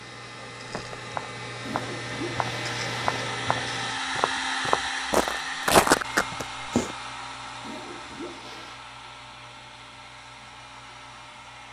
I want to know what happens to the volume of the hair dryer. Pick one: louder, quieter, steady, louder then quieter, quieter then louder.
louder then quieter.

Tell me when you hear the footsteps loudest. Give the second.
6 s.